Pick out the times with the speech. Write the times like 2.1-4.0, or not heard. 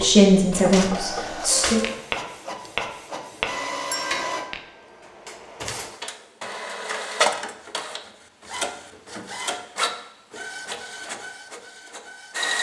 0.0-1.8.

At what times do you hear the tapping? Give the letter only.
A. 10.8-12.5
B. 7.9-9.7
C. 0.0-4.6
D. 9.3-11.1
C.